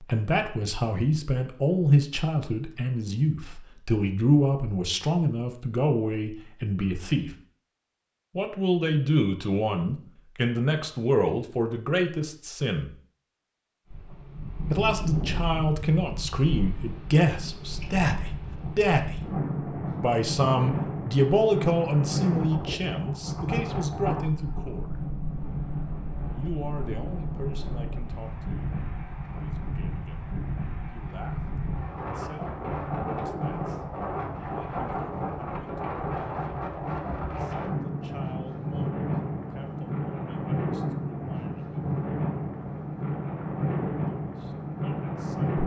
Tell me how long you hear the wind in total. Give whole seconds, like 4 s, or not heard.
32 s.